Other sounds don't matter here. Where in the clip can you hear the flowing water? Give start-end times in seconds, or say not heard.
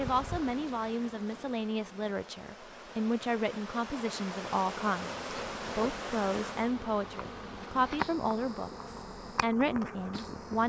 0.0-6.8.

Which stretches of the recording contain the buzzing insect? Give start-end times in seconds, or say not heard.
0.0-10.6.